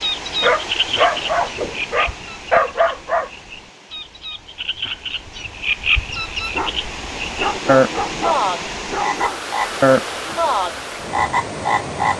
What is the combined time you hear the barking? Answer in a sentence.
The barking can be heard for 6 seconds in total.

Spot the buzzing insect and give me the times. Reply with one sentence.
The buzzing insect can't be heard in this clip.